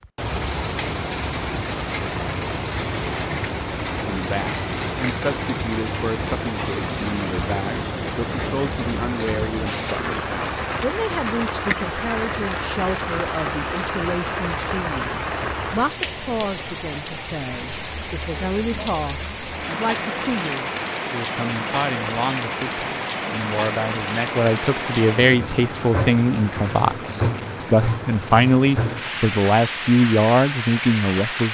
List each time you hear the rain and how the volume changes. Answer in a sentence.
The rain can be heard from 0.0 to 31.4 s, at a steady volume.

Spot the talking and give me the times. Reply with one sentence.
The talking can be heard from 4.0 to 31.4 s.